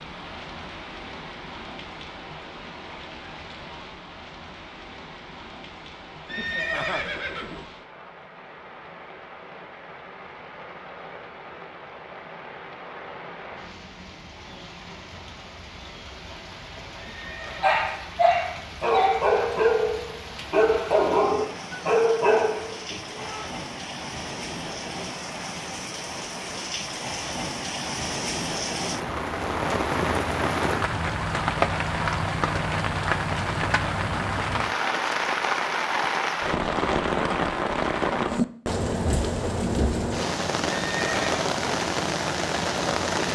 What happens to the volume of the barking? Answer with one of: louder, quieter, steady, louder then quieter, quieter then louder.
steady.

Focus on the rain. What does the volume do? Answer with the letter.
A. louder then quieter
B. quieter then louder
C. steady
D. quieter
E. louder
E.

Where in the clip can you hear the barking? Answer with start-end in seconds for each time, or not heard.
17.6-23.5.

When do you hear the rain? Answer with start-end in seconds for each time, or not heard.
0.0-43.3.